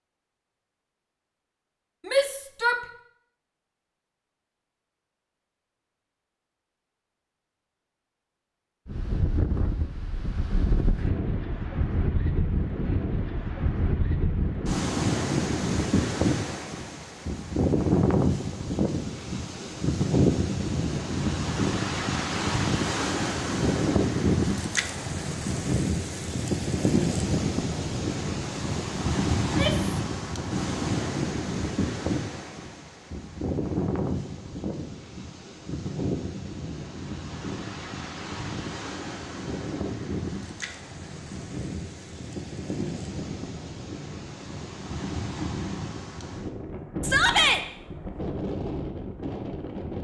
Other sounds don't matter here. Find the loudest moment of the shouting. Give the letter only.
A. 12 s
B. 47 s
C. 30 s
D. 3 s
B.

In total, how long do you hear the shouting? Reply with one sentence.
You can hear the shouting for 2 seconds altogether.